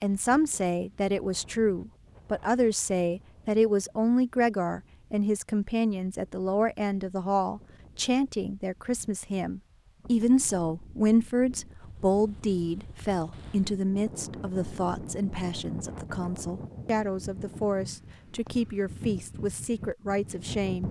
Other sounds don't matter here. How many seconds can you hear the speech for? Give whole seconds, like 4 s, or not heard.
21 s.